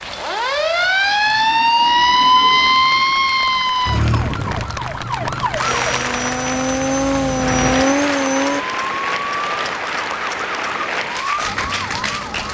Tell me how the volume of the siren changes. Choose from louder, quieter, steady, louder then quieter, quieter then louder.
quieter.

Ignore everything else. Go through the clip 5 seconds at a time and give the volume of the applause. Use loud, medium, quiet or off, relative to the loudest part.
medium, loud, loud.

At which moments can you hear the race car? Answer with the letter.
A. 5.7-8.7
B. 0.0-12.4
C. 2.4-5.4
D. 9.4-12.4
A.